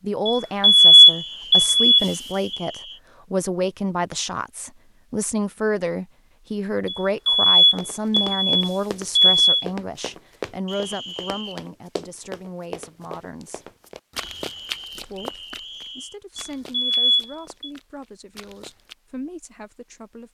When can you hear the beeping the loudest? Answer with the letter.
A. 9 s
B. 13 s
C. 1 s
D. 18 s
C.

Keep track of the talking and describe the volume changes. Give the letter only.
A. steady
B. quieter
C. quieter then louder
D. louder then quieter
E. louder
B.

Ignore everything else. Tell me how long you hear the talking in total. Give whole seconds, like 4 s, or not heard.
19 s.